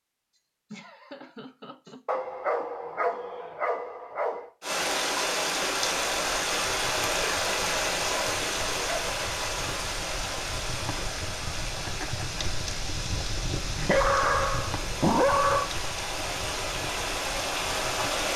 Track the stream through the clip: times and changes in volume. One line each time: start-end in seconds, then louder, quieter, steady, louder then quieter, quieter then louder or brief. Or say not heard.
4.6-18.3 quieter then louder.